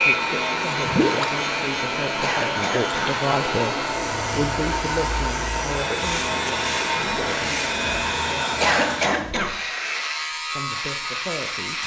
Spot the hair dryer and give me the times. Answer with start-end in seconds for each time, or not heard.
0.0-9.1.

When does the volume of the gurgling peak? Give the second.
1 s.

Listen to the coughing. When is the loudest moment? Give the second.
9 s.